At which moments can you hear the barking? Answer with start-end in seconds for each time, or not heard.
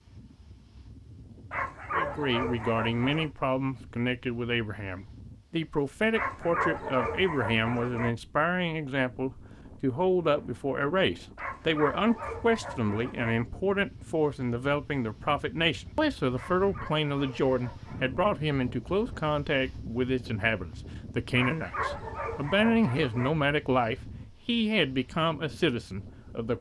1.5-3.3, 6.1-8.1, 11.3-13.3, 16.4-18.2, 21.4-23.3.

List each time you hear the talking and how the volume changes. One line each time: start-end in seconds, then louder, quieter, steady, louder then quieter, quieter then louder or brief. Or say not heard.
1.9-26.5 steady.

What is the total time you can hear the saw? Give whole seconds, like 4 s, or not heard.
not heard.